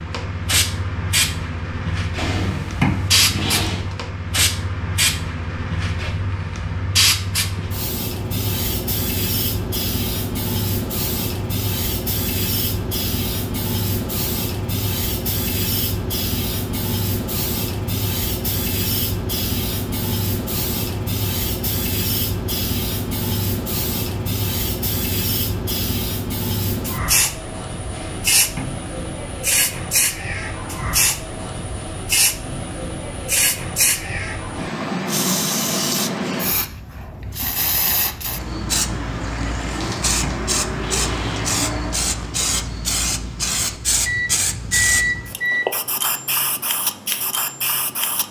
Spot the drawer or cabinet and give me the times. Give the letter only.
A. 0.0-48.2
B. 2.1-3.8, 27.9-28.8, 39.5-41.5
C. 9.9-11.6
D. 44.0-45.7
B.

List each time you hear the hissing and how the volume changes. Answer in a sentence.
You can hear the hissing from 0.0 to 48.2 s, at a steady volume.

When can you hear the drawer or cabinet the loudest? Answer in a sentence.
The volume of the drawer or cabinet peaks at 3 seconds.